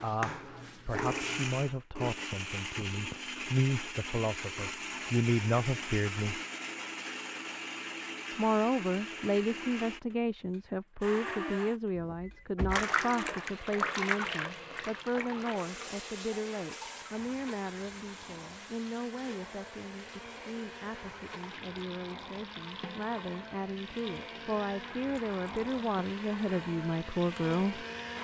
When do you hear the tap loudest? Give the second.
14 s.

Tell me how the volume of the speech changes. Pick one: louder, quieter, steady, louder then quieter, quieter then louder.
quieter then louder.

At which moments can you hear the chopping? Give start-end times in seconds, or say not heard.
not heard.